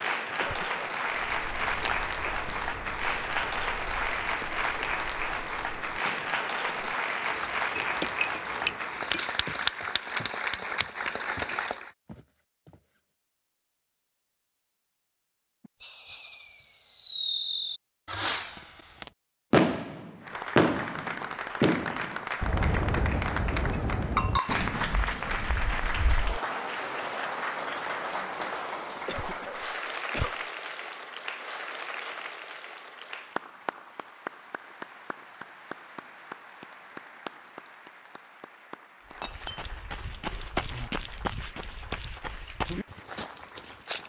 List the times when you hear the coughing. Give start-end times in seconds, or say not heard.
0.4-0.8, 29.1-30.4.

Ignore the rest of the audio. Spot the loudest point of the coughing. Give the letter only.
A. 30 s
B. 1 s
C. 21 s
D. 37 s
A.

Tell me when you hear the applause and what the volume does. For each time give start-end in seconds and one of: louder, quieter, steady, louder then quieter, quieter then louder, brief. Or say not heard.
0.0-11.9 steady
20.2-44.0 quieter.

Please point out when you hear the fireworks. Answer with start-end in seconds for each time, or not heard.
15.8-26.4.